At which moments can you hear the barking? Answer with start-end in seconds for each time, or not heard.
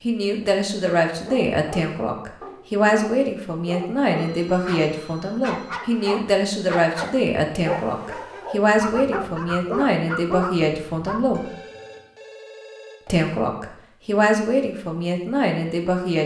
1.2-11.4.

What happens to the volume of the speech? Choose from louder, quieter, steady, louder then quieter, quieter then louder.
steady.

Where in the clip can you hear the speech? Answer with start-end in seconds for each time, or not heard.
0.0-11.4, 13.1-16.2.